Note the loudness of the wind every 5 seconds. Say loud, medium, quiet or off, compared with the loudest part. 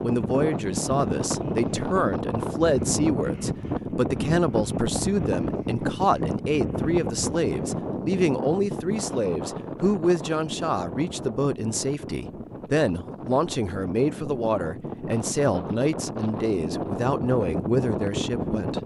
loud, loud, medium, loud.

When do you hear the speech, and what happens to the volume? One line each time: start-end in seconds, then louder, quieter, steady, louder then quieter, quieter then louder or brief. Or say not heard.
0.0-18.8 steady.